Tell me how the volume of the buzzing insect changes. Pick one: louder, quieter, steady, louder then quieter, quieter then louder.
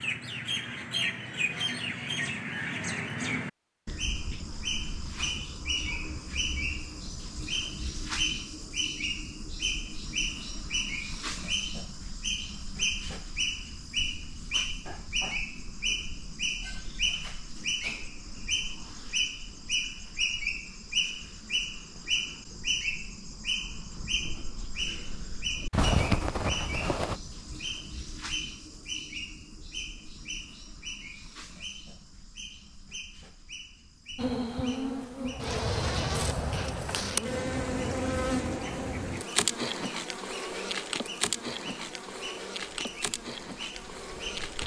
quieter.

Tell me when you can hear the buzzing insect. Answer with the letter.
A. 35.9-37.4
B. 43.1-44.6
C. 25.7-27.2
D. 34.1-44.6
D.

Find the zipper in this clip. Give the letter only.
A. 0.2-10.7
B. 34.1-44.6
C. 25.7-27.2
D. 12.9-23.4
C.